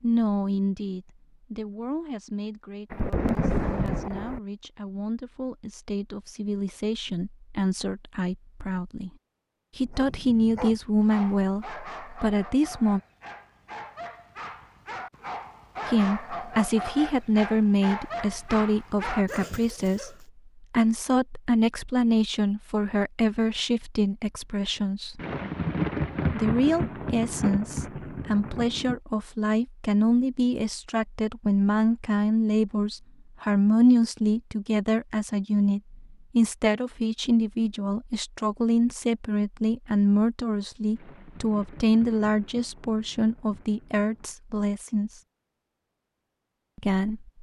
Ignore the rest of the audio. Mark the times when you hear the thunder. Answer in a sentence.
The thunder can be heard from 2.9 to 4.4 s, from 25.1 to 29.0 s and from 41.0 to 44.4 s.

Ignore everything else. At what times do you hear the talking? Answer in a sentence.
The talking can be heard from 0.0 to 9.1 s, from 9.8 to 13.0 s, from 15.8 to 25.2 s, from 26.3 to 45.2 s and from 46.8 to 47.3 s.